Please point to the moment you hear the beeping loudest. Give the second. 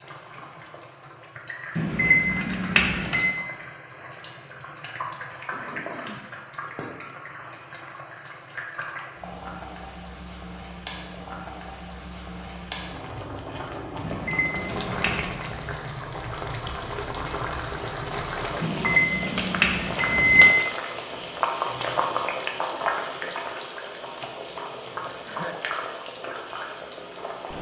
20 s.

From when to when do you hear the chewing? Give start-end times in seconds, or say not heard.
not heard.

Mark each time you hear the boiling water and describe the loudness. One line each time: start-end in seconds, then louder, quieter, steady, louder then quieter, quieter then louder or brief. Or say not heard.
0.0-27.5 louder.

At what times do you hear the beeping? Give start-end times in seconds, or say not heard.
1.8-3.2, 14.0-15.4, 18.6-20.5.